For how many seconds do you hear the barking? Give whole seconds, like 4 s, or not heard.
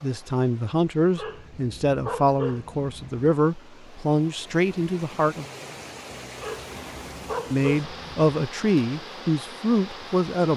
4 s.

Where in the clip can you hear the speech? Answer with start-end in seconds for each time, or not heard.
0.0-5.5, 7.5-10.5.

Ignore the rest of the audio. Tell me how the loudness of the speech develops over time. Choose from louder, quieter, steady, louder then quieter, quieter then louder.
steady.